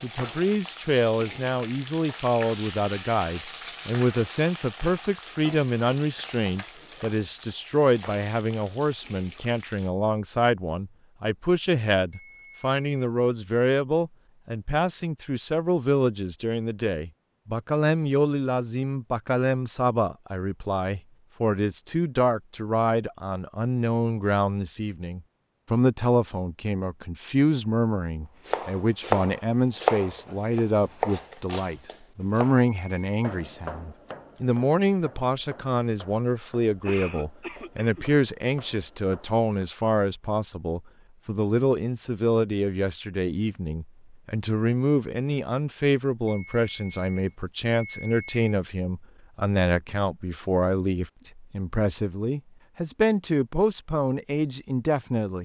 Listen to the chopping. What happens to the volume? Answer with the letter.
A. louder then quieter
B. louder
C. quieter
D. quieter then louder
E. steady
C.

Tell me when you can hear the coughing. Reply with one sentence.
The coughing can be heard from 36.9 to 38.0 s.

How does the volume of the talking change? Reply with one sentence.
The volume of the talking stays about the same.